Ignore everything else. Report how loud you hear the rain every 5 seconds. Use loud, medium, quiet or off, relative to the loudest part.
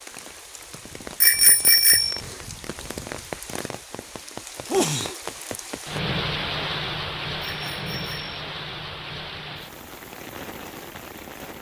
loud, loud, medium.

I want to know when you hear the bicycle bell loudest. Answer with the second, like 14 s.
2 s.